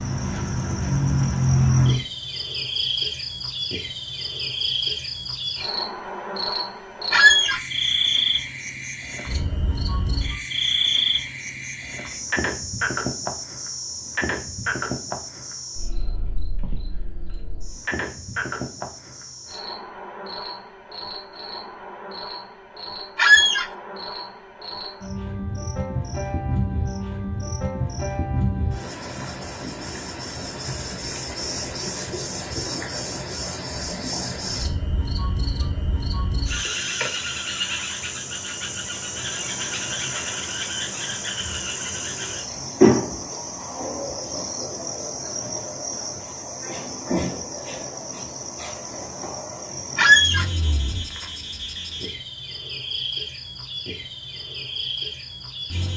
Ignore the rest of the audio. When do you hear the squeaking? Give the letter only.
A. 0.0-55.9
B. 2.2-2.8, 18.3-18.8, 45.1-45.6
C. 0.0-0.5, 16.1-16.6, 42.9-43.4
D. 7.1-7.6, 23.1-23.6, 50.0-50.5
D.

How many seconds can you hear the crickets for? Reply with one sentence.
You can hear the crickets for 56 seconds altogether.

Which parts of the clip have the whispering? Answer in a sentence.
You can't hear the whispering here.